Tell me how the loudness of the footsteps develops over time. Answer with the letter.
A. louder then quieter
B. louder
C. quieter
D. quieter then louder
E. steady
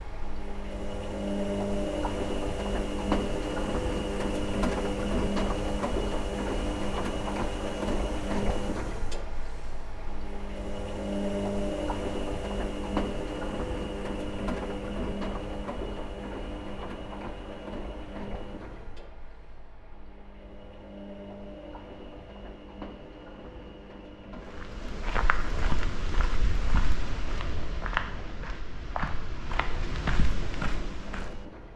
E.